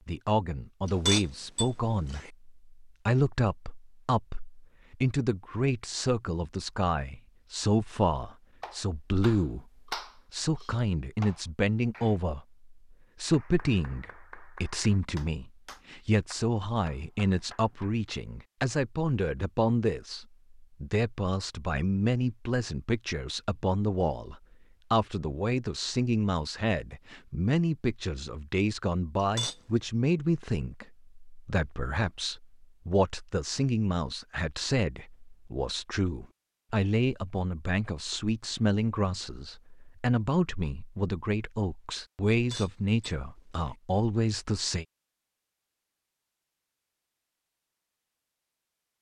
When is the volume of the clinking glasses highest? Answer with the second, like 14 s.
1 s.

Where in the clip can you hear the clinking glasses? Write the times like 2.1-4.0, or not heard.
0.8-2.3, 29.1-29.6, 42.3-43.8.